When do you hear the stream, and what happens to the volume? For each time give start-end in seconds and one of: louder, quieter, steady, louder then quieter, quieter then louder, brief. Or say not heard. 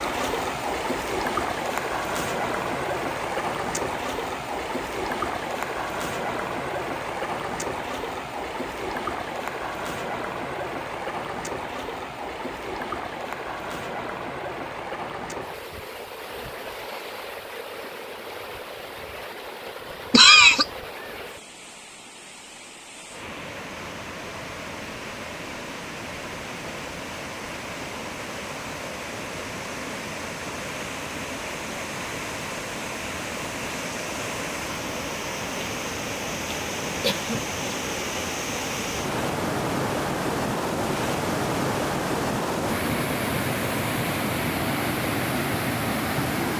0.0-46.5 quieter then louder.